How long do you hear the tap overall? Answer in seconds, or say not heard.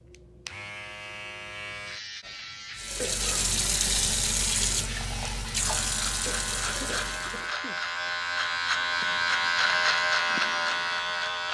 5 s.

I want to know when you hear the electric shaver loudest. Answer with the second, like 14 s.
10 s.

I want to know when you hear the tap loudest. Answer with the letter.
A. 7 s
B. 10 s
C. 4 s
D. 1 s
C.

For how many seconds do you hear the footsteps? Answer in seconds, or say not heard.
not heard.